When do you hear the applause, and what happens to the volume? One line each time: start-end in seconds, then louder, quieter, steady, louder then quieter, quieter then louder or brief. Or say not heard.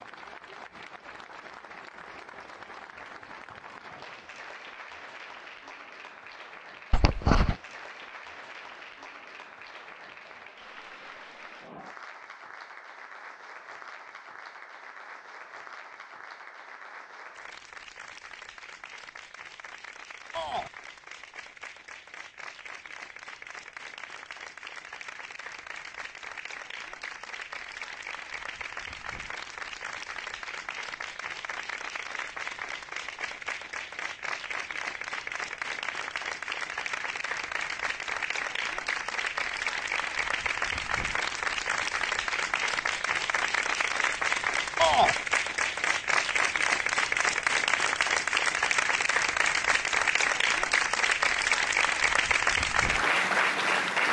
0.0-54.0 louder.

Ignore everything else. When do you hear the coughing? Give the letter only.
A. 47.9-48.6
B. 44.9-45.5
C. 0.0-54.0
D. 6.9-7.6
D.